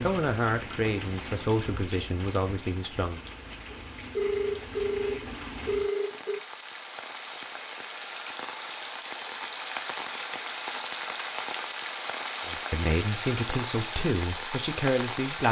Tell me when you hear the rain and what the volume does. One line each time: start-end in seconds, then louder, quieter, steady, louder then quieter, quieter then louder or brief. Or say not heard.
0.0-15.4 louder.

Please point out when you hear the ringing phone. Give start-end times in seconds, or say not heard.
3.7-6.4.